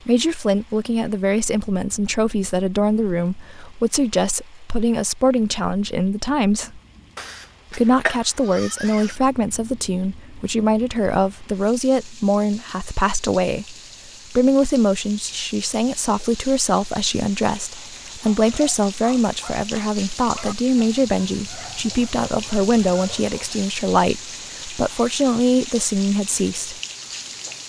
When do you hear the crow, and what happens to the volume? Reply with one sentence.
You can't hear the crow here.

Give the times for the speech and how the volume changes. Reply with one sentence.
The speech can be heard from 0.1 to 6.8 s, at a steady volume; and from 7.7 to 26.8 s, at a steady volume.